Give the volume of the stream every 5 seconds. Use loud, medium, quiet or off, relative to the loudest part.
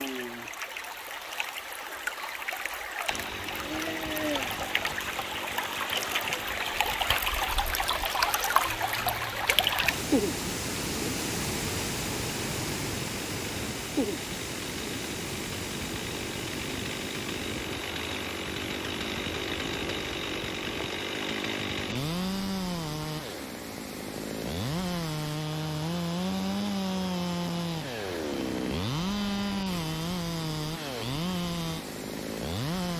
medium, loud, loud, medium, quiet, quiet, quiet.